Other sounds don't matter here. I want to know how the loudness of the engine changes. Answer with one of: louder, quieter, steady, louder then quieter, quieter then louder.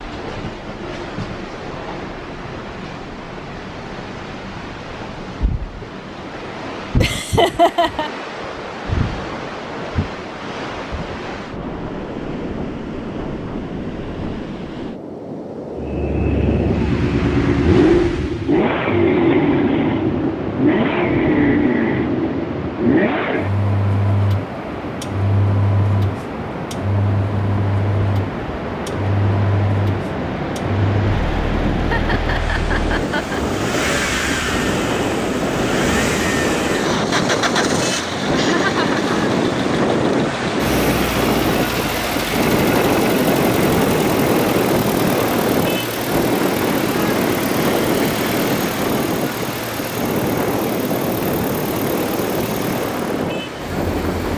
quieter.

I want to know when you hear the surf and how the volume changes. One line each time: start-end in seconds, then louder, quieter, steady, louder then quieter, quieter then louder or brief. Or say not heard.
0.0-54.3 louder.